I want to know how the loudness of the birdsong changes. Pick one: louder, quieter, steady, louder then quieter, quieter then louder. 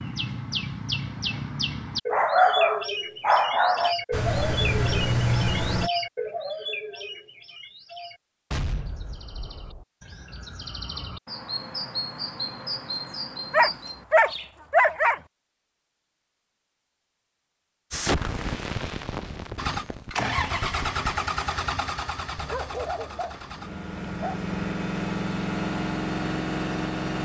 quieter then louder.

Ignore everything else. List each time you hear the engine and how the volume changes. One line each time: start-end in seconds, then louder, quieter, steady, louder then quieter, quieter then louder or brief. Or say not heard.
4.1-5.9 brief
19.6-27.1 quieter then louder.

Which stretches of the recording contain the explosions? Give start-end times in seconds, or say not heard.
8.5-9.8, 17.9-21.1.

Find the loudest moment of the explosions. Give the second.
18 s.